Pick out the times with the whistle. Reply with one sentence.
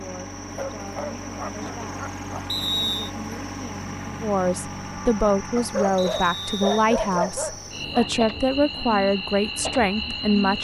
You can hear the whistle from 2.5 to 3.1 s and from 6.0 to 6.8 s.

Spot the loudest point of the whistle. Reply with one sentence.
The loudest moment of the whistle is at 3 seconds.